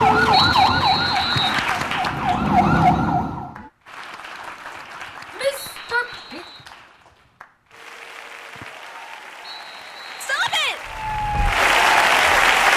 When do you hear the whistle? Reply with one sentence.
You can hear the whistle from 0.3 to 1.6 s, from 5.5 to 6.7 s and from 9.4 to 10.8 s.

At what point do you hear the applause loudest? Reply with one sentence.
The loudest moment of the applause is at 12 seconds.